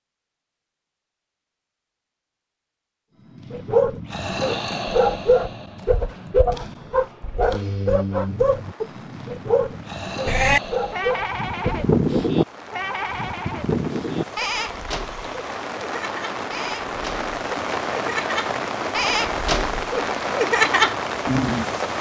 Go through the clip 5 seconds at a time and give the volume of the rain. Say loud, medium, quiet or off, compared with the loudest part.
off, quiet, quiet, loud, loud.